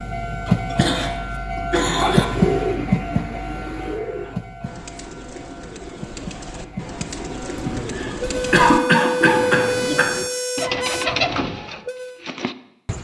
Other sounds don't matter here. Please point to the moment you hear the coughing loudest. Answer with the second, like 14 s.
9 s.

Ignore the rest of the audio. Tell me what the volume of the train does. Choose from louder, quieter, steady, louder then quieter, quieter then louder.
quieter then louder.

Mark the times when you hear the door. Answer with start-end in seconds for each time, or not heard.
not heard.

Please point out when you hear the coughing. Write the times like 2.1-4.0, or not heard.
0.5-2.2, 7.5-10.2.